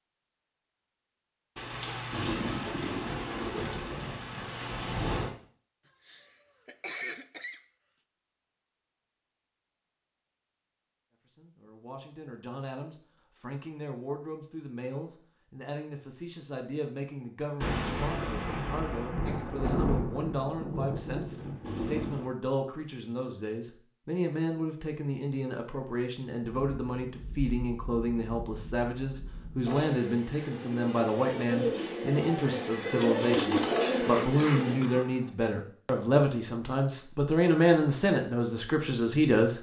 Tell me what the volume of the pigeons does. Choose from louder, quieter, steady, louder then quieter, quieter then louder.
louder.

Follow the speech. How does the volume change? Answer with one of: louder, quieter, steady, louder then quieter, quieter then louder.
louder.